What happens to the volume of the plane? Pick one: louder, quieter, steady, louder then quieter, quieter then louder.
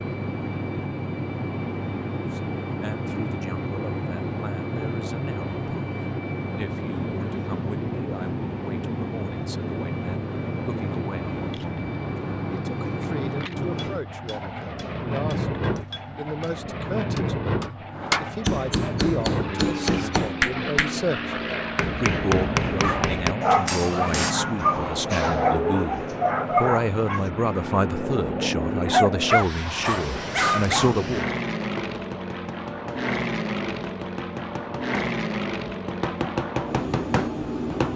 steady.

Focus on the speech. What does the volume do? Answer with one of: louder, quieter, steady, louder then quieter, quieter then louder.
louder.